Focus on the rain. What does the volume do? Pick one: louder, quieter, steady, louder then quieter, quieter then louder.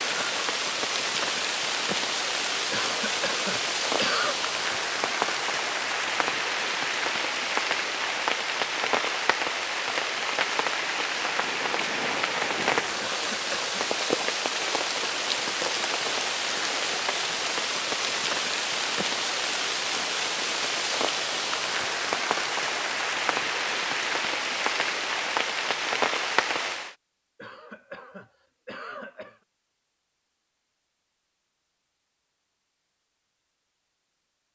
steady.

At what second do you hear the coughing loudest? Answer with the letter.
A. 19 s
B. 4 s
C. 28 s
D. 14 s
B.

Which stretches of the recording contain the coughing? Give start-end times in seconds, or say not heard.
2.7-4.3, 12.9-13.8, 27.4-29.4.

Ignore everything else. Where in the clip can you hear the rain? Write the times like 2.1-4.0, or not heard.
0.0-26.9.